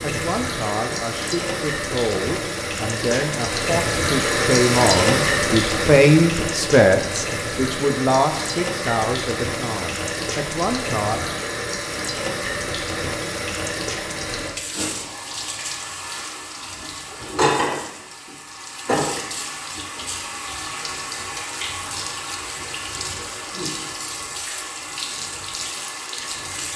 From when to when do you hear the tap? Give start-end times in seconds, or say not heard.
0.0-26.7.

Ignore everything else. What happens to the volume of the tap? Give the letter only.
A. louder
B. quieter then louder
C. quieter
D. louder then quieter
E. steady
C.